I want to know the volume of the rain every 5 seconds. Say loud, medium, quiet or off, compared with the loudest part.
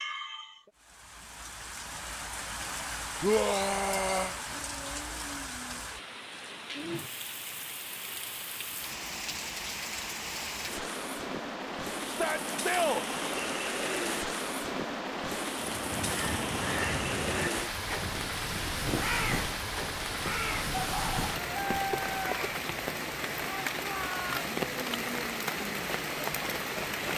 medium, medium, loud, loud, loud, loud.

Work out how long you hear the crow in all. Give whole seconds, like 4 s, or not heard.
7 s.